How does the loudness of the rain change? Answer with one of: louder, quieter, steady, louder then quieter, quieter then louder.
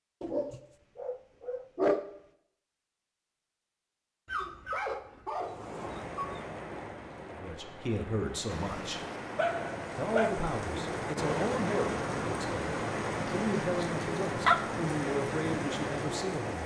louder.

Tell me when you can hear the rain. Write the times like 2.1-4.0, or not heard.
5.3-16.6.